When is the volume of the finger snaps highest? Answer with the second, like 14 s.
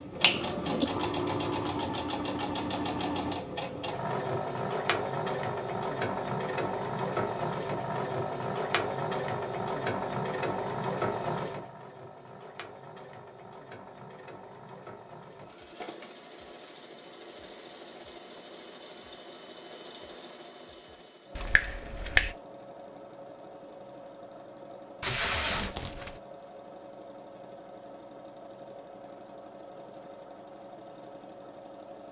22 s.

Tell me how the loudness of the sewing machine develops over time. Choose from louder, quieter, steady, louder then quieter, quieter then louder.
quieter.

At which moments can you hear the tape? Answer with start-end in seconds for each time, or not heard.
25.0-26.2.